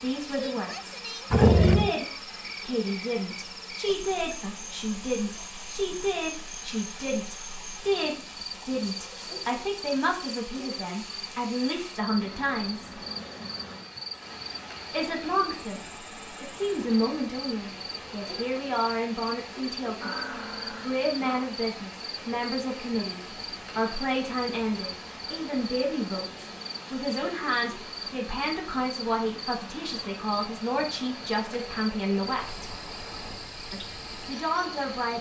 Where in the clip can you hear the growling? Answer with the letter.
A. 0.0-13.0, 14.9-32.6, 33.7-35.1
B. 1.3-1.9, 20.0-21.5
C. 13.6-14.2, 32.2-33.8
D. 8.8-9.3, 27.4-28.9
B.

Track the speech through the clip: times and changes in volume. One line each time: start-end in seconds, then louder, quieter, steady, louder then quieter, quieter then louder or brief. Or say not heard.
0.0-13.0 steady
14.9-32.6 steady
33.7-35.1 brief.